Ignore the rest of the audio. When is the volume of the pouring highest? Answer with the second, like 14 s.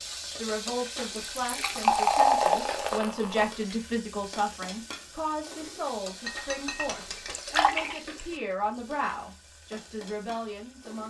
2 s.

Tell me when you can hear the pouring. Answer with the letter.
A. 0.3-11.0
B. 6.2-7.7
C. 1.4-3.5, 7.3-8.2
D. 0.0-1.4
C.